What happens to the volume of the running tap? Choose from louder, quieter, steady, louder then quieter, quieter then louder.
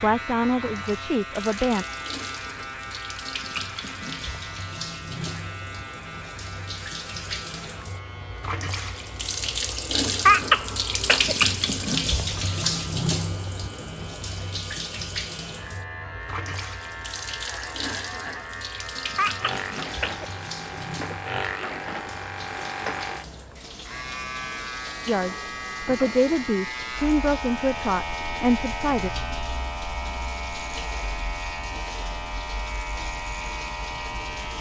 louder then quieter.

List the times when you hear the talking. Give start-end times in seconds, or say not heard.
0.0-1.9, 25.1-29.1.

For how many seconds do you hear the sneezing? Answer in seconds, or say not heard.
3 s.